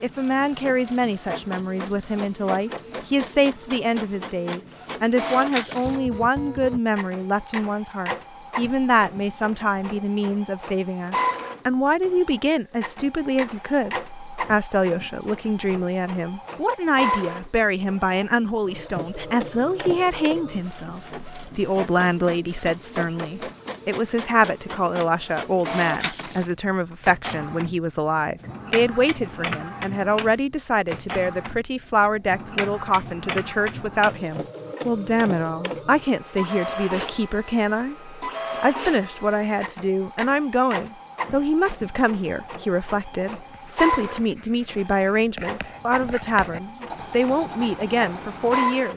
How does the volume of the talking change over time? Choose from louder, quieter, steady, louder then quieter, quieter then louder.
steady.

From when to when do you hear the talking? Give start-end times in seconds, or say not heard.
0.0-48.9.